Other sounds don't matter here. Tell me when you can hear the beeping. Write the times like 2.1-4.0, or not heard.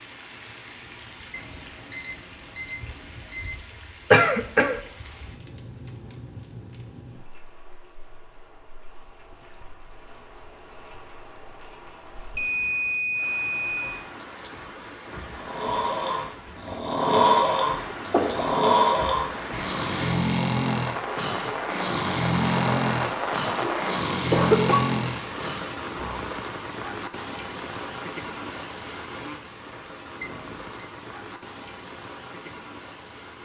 1.3-3.6, 12.3-14.1, 30.2-30.9.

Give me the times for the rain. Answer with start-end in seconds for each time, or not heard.
0.0-33.3.